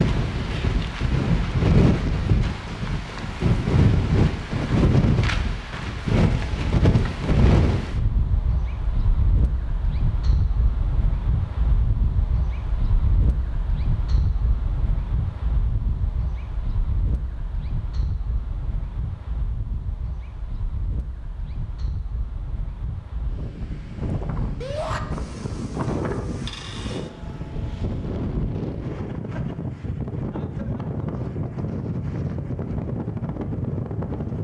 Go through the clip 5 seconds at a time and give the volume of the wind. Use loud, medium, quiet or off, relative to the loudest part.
loud, loud, medium, quiet, quiet, medium, medium.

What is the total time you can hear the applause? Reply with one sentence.
You can't hear the applause here.